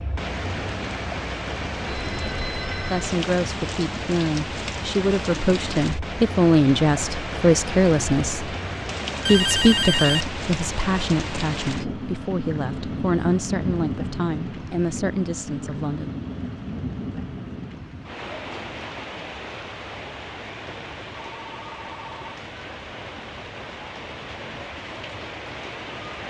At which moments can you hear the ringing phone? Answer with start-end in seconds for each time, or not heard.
1.9-3.1, 9.2-10.3, 21.4-22.3.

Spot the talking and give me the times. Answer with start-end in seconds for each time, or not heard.
2.9-8.6, 9.2-16.1.